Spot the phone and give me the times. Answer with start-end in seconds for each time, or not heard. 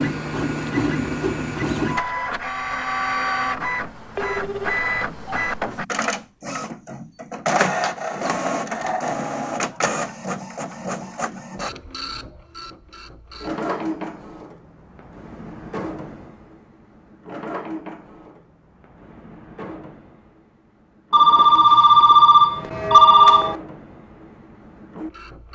4.2-4.8, 21.1-23.6.